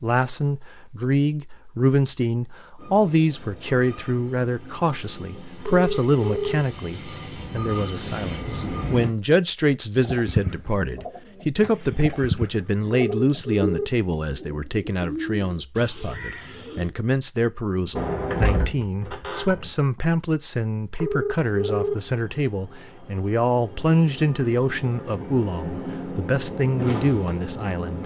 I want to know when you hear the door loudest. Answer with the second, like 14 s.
18 s.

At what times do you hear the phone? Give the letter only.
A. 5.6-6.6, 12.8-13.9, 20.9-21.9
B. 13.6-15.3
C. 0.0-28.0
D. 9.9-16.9
A.